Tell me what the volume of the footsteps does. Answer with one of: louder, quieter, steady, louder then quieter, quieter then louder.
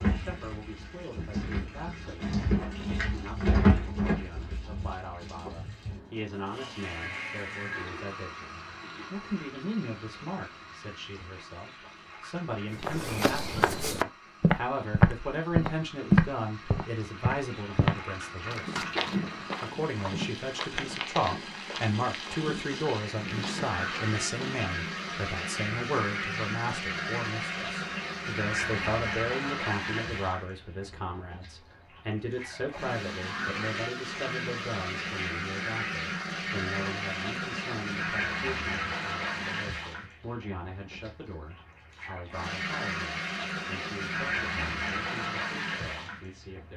quieter.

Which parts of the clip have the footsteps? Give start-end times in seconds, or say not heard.
12.8-24.6.